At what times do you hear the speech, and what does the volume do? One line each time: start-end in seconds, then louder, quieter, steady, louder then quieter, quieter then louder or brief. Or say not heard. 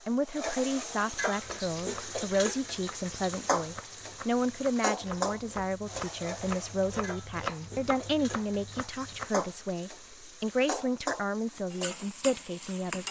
0.1-13.0 steady.